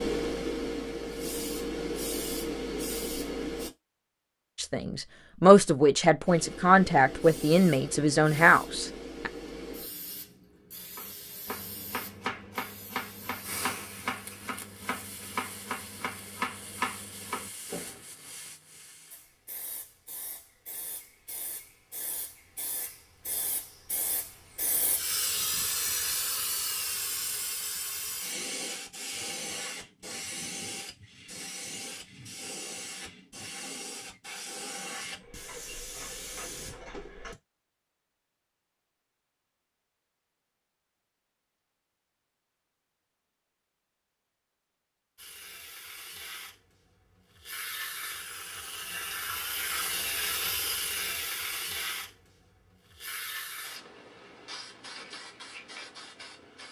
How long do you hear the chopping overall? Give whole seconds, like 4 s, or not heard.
7 s.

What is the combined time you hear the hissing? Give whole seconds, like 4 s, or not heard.
46 s.